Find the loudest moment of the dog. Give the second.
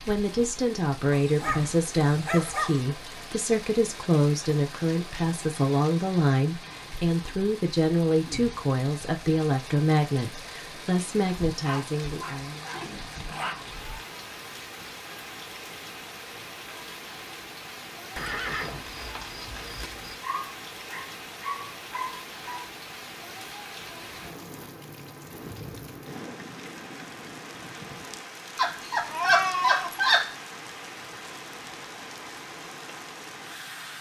29 s.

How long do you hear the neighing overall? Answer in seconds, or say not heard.
3 s.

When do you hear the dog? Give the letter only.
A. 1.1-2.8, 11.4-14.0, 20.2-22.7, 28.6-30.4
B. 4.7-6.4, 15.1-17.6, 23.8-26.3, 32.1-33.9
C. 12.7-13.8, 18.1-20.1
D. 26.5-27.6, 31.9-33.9
A.